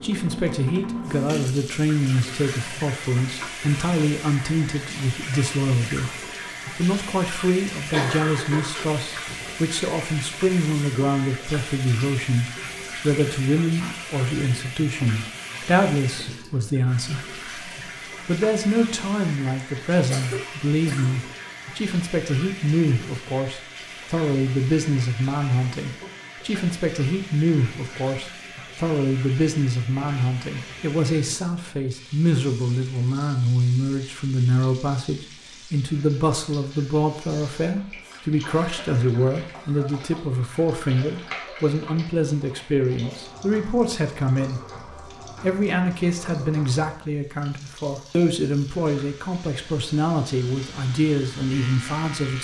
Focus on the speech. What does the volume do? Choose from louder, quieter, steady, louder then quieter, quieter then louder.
steady.